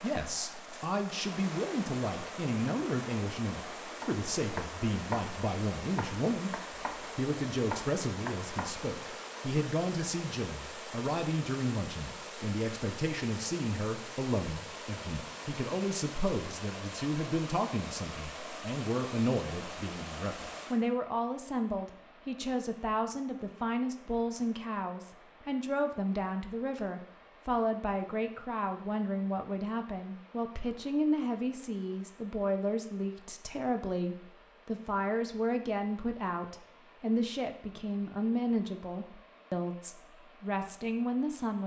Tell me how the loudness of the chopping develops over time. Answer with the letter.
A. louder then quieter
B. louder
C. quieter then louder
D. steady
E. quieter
C.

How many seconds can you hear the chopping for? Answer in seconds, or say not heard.
5 s.